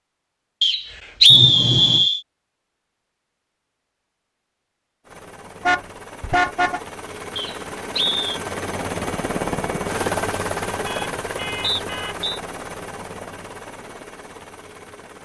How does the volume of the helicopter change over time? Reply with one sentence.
The loudness of the helicopter goes up, then down.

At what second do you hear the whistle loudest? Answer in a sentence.
The loudest moment of the whistle is at 1 second.